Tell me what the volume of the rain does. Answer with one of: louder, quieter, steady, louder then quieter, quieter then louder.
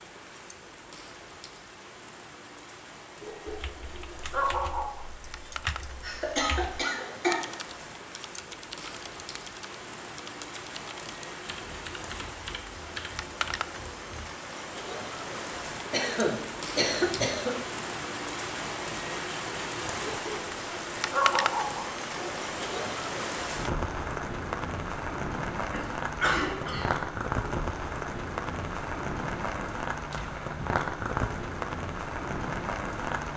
louder.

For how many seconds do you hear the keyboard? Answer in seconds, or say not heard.
11 s.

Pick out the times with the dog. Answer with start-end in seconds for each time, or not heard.
3.2-5.0, 20.0-22.5.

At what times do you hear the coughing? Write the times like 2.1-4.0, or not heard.
6.0-7.5, 15.9-17.6, 25.7-26.9.